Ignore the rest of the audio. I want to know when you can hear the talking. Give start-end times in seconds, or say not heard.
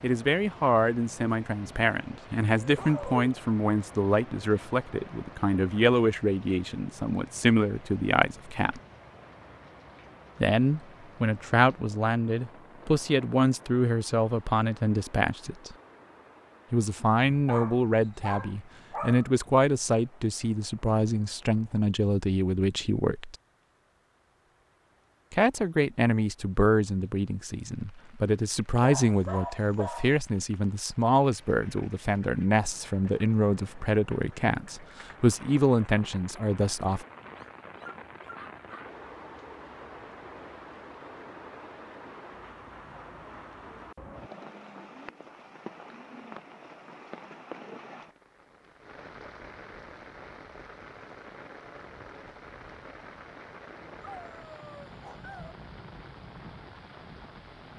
0.0-8.8, 10.4-15.8, 16.7-23.4, 25.3-37.0.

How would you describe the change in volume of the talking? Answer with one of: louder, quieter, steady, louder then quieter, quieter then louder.
steady.